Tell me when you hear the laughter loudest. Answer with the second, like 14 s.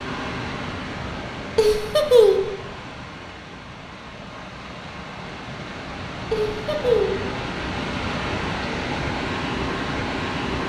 2 s.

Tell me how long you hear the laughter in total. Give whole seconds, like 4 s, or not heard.
2 s.